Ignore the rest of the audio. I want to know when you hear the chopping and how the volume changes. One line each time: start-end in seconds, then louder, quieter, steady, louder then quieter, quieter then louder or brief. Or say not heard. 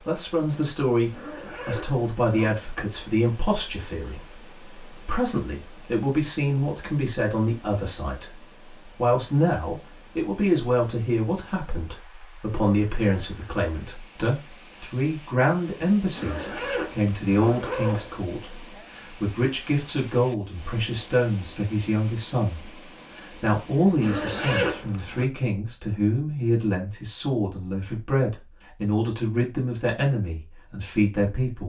not heard.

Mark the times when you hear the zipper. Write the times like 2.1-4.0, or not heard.
1.1-2.5, 16.1-18.2, 24.0-25.2.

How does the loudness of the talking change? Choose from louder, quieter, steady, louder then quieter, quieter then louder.
steady.